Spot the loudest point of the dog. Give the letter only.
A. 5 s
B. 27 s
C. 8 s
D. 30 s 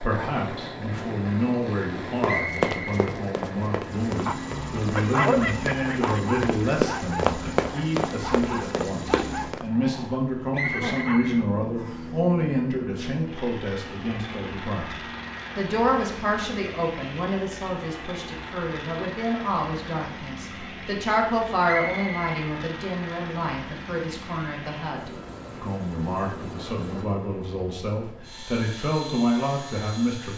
A.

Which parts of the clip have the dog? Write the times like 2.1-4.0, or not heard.
4.1-11.4.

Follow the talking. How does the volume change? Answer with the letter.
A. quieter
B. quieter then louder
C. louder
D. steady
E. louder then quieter
D.